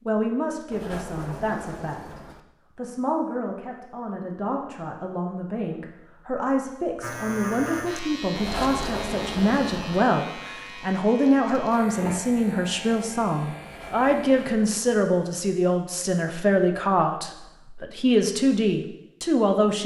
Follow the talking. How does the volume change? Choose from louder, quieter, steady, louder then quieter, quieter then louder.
louder.